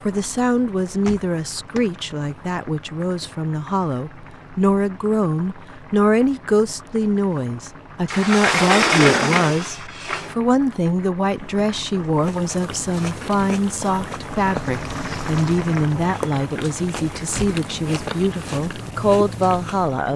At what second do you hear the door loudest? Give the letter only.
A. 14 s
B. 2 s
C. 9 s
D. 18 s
C.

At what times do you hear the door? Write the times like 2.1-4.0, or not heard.
0.8-2.0, 8.1-10.3, 17.1-17.6.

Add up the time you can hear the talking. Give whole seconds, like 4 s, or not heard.
20 s.